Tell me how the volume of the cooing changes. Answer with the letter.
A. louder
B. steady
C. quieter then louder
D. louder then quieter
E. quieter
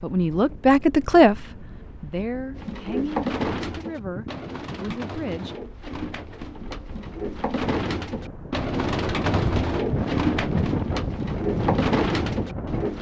C.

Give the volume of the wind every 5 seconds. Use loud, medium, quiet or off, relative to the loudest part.
quiet, medium, loud.